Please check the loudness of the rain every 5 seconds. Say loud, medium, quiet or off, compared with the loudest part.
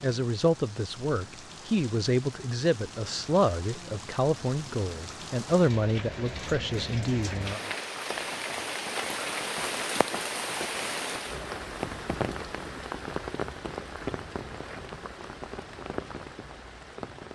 medium, loud, loud, medium.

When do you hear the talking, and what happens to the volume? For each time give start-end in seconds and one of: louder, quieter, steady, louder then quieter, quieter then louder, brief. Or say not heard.
0.0-7.6 steady.